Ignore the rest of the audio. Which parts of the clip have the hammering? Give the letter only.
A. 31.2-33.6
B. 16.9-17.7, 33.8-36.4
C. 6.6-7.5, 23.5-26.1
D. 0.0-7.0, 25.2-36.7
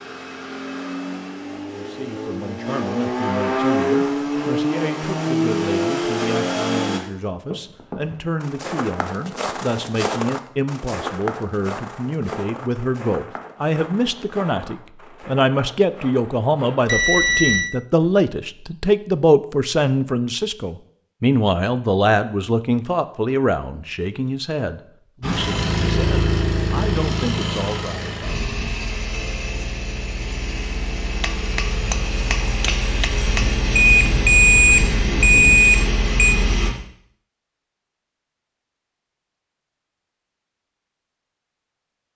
A.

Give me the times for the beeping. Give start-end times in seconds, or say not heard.
16.9-17.7, 33.8-36.4.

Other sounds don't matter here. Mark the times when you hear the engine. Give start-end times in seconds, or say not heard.
0.0-7.0, 25.2-36.7.